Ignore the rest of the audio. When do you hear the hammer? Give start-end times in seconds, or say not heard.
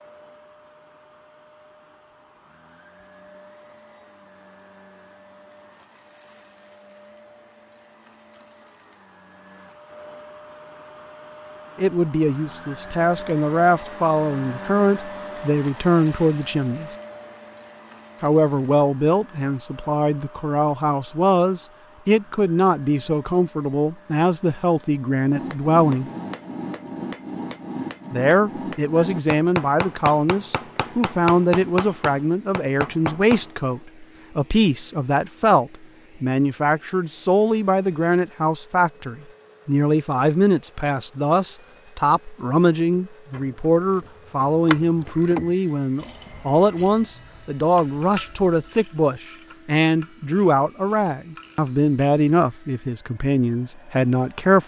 25.4-33.5.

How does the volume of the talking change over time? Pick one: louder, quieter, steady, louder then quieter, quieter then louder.
steady.